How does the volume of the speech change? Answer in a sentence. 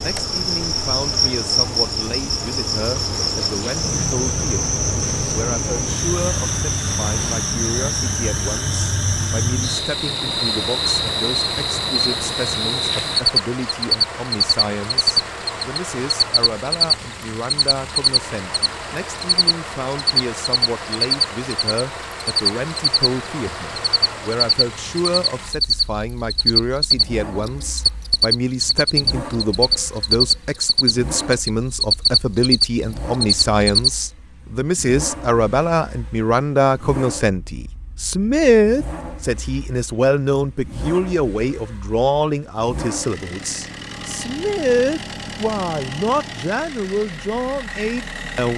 The loudness of the speech goes up.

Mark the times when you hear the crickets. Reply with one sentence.
The crickets can be heard from 0.0 to 33.9 s.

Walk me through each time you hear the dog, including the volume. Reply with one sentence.
You can't hear the dog here.